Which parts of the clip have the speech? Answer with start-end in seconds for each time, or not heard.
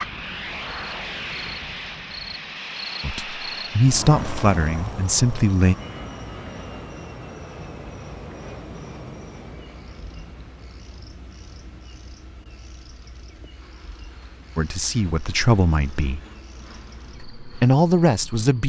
3.0-5.8, 14.6-16.2, 17.4-18.6.